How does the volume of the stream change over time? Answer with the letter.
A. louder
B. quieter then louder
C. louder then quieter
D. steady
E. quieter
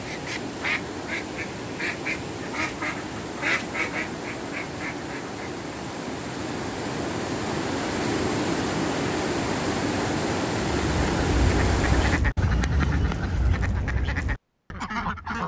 A.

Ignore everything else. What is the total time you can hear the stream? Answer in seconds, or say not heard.
12 s.